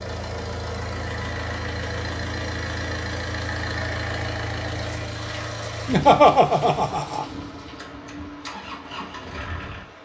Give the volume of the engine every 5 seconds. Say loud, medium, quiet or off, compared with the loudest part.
loud, medium.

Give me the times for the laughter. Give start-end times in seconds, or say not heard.
5.8-7.2.